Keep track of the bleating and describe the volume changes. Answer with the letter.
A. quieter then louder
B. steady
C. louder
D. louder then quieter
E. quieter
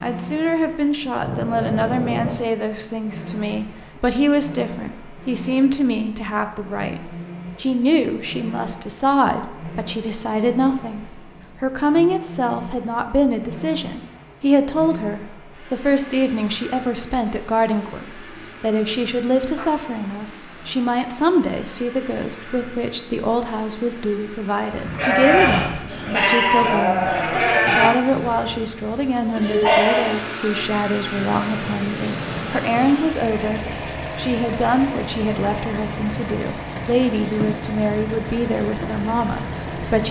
A.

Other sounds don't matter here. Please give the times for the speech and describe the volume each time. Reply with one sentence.
The speech can be heard from 0.0 to 40.0 s, at a steady volume.